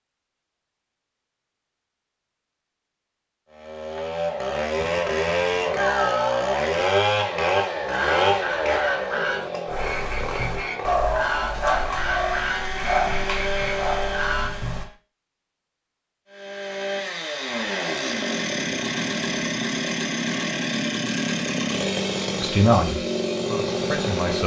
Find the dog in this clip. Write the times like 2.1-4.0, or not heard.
9.7-14.8.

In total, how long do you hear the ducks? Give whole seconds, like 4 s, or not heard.
7 s.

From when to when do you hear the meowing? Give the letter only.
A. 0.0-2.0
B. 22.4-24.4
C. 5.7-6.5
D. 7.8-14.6
C.